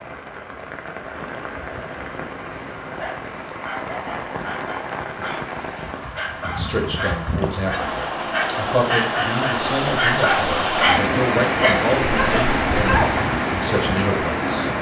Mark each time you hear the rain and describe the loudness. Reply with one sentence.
The rain can be heard from 0.0 to 14.7 s, getting louder.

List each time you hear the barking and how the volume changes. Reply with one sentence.
The barking can be heard from 2.9 to 13.2 s, getting louder.